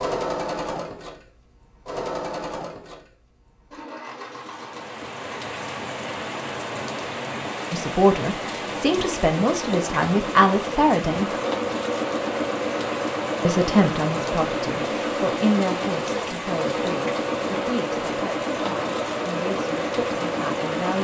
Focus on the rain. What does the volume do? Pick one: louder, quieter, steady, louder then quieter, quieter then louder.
steady.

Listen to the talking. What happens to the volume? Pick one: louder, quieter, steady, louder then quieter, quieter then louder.
quieter.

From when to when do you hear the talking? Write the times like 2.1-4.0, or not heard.
7.7-11.3, 13.4-20.9.